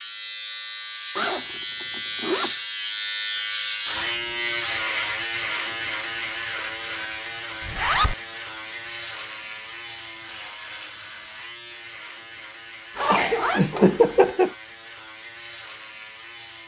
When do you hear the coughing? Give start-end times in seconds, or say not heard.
13.1-14.5.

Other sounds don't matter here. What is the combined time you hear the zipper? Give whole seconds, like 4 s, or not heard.
3 s.